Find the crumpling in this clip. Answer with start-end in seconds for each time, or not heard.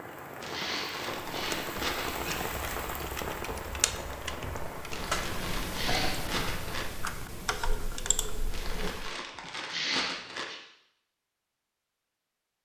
0.4-2.1, 4.9-6.8, 8.5-10.4.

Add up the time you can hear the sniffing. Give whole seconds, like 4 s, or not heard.
4 s.